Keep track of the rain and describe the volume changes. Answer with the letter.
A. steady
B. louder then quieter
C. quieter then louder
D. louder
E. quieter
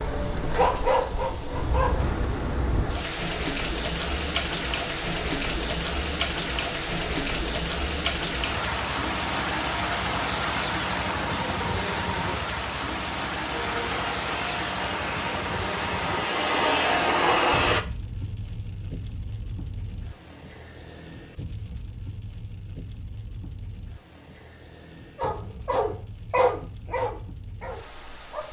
E.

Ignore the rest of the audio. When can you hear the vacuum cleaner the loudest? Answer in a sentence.
The loudest moment of the vacuum cleaner is at 17 seconds.